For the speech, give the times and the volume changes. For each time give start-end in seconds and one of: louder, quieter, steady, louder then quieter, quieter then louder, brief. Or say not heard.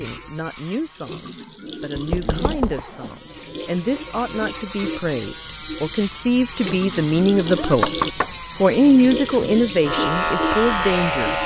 0.0-7.9 louder
8.6-11.3 brief.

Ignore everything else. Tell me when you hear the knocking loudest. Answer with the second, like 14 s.
8 s.